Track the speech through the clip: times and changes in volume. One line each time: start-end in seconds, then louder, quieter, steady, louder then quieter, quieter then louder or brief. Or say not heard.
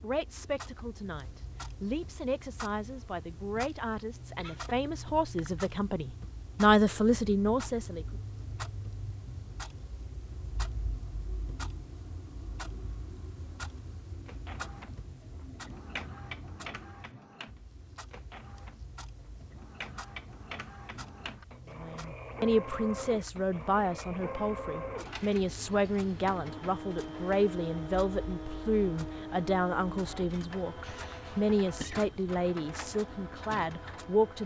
0.0-8.1 louder
21.8-34.4 steady.